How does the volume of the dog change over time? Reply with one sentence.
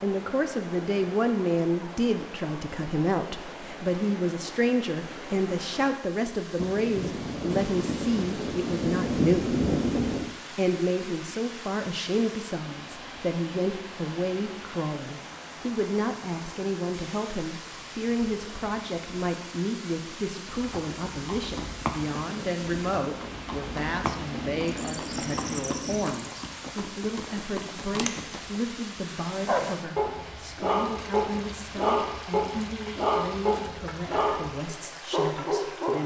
The volume of the dog stays about the same.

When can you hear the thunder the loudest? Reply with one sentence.
The volume of the thunder peaks at 10 seconds.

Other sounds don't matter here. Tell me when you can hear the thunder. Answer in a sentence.
The thunder can be heard from 6.5 to 10.3 s and from 21.6 to 26.1 s.